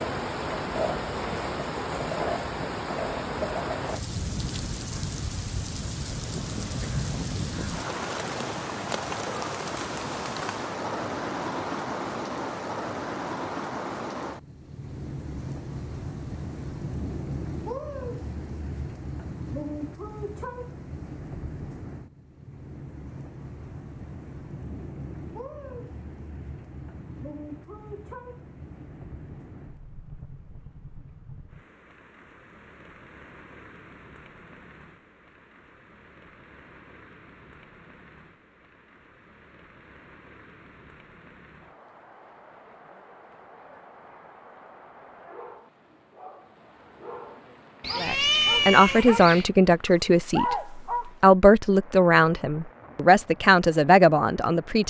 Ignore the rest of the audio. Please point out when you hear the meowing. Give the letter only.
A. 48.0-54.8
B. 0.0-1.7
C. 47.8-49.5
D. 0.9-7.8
C.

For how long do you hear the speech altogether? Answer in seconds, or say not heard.
7 s.